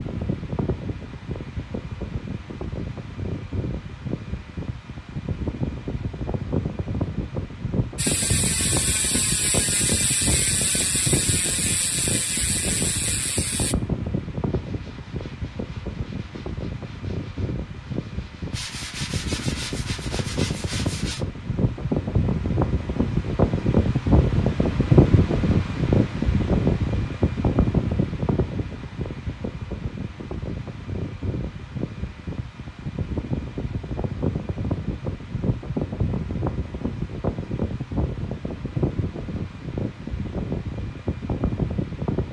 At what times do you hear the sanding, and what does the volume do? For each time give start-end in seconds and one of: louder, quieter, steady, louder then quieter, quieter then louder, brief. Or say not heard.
14.4-21.2 louder.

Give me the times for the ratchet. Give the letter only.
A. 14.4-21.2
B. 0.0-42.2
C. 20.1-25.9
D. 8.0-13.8
D.